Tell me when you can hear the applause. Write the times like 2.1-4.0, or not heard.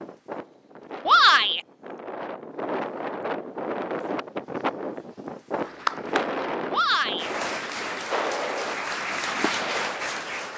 5.5-10.5.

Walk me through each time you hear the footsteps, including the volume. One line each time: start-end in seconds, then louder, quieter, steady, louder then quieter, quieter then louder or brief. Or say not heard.
not heard.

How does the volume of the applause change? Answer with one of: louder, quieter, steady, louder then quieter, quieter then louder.
louder.